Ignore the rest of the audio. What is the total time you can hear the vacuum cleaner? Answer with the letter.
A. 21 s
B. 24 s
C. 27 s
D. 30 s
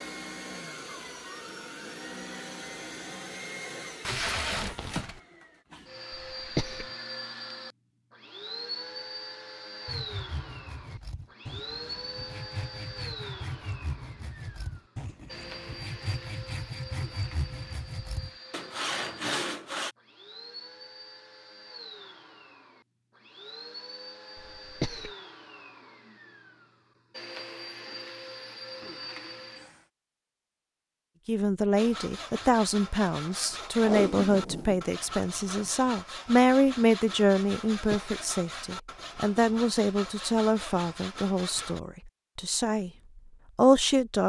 D.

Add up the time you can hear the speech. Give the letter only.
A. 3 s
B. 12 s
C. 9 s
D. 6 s
B.